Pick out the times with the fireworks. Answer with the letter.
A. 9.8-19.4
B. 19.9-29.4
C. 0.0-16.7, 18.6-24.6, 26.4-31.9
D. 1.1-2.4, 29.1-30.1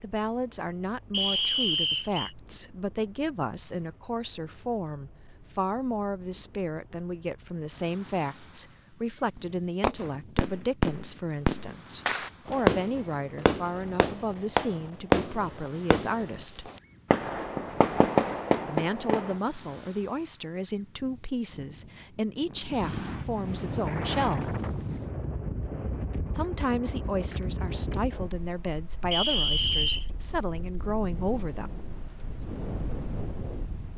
A.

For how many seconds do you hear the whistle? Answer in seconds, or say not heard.
2 s.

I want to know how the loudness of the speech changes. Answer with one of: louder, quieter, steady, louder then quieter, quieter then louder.
steady.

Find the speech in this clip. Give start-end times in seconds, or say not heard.
0.0-16.7, 18.6-24.6, 26.4-31.9.